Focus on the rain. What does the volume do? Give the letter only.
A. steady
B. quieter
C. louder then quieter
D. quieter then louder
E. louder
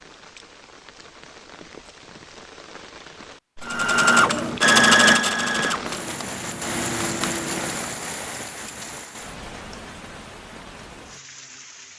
C.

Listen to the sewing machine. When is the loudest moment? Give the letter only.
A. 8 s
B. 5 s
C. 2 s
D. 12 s
B.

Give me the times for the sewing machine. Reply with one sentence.
You can hear the sewing machine from 3.6 to 8.1 s.